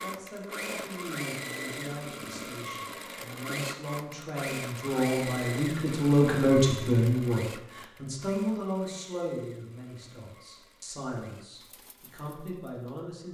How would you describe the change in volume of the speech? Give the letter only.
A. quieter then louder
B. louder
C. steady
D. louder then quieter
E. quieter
D.